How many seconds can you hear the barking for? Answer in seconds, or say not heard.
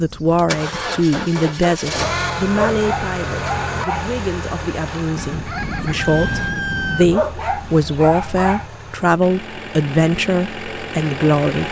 3 s.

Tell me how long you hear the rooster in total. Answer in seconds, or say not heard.
2 s.